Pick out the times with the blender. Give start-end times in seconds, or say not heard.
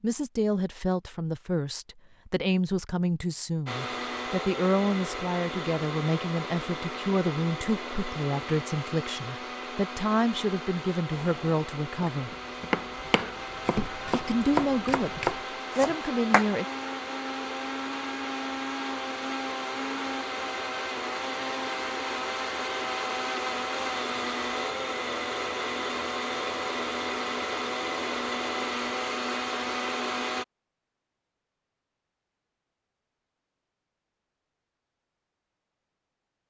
3.6-30.4.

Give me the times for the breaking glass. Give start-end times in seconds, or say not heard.
not heard.